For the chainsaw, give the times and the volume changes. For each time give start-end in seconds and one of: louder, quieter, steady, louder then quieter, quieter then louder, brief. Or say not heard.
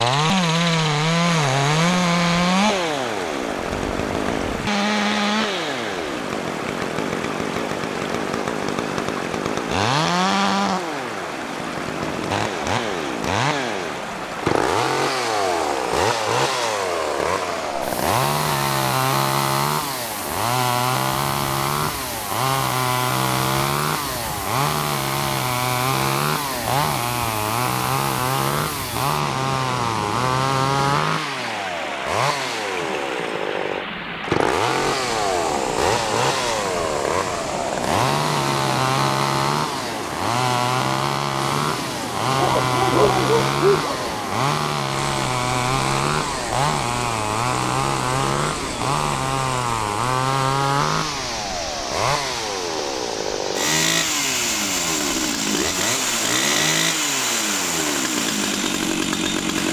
0.0-59.6 steady.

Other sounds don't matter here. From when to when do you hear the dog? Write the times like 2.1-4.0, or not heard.
42.4-44.1.